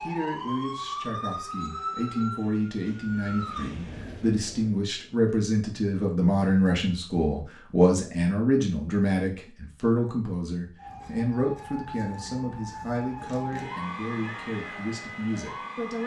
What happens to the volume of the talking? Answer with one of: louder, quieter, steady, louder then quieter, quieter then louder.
louder then quieter.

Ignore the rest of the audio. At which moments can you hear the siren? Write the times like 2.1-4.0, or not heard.
0.0-3.7, 10.8-16.0.